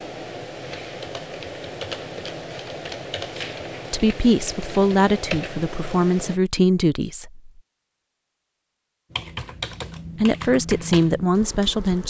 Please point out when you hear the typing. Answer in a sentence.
You can hear the typing from 0.0 to 6.4 s and from 9.1 to 12.0 s.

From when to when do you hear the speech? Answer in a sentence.
You can hear the speech from 3.9 to 7.5 s and from 10.2 to 12.0 s.